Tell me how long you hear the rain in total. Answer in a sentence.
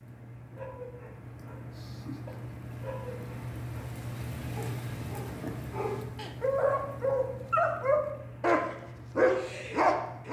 You can hear the rain for 10 seconds altogether.